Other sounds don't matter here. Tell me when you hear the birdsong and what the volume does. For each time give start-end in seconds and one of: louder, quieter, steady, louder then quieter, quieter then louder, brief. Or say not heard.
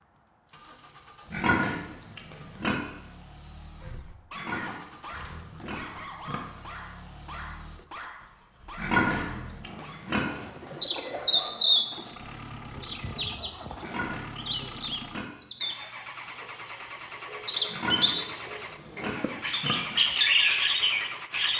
9.9-21.5 quieter then louder.